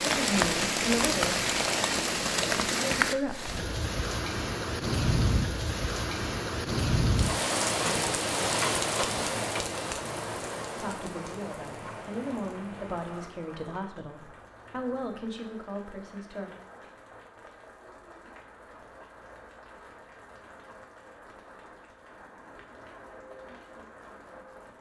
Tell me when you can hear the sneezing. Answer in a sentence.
You can't hear the sneezing here.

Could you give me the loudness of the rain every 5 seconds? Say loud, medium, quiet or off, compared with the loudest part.
loud, loud, quiet, quiet, quiet.